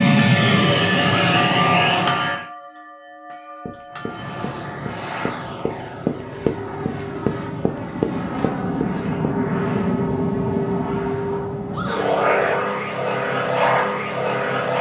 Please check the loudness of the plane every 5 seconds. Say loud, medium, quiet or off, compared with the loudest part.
loud, medium, loud.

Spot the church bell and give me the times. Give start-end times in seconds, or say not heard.
0.0-4.9.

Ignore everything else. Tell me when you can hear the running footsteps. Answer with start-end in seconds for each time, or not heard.
3.6-9.1.